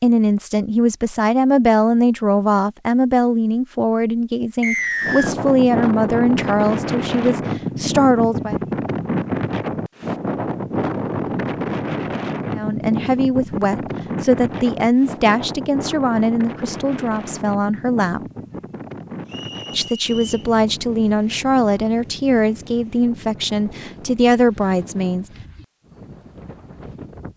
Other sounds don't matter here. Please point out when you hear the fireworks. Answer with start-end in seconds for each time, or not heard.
not heard.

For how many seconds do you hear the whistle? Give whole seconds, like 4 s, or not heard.
2 s.